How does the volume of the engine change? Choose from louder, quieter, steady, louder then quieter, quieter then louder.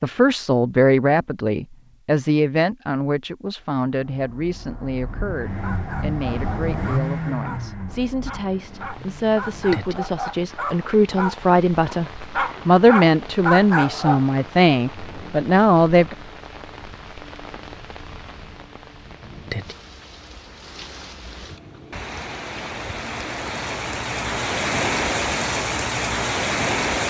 louder then quieter.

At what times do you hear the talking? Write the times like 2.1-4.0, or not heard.
0.0-16.1.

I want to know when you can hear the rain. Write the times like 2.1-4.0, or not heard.
8.6-27.0.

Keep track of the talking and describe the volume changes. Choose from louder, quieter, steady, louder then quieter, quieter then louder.
quieter then louder.